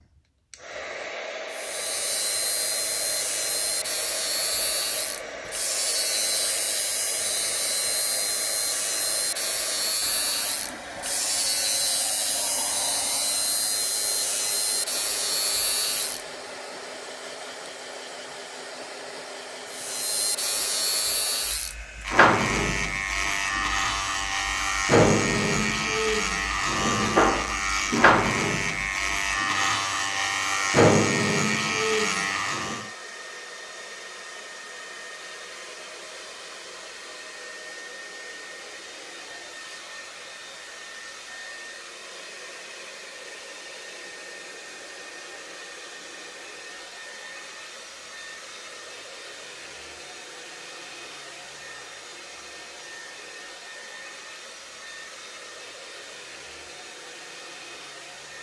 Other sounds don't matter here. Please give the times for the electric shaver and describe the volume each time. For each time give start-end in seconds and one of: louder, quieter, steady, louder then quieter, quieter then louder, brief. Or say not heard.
1.5-16.2 steady
19.7-32.9 steady.